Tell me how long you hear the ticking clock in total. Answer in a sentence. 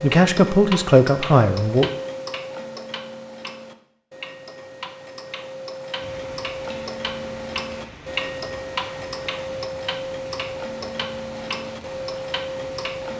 The ticking clock can be heard for 13 seconds in total.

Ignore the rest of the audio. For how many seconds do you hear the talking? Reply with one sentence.
The talking can be heard for 2 seconds in total.